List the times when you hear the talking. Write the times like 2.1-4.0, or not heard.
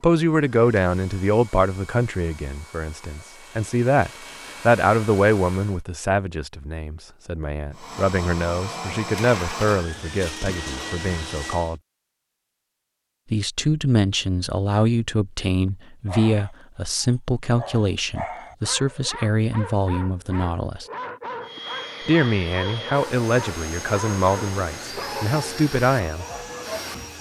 0.0-11.8, 13.3-20.9, 22.1-26.2.